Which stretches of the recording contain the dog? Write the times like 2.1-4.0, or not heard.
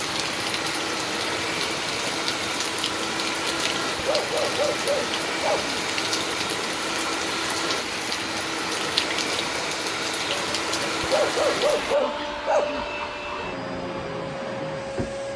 4.0-5.8, 11.0-12.9.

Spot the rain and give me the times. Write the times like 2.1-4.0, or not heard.
0.0-11.9.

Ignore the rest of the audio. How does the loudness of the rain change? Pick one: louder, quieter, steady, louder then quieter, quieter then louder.
steady.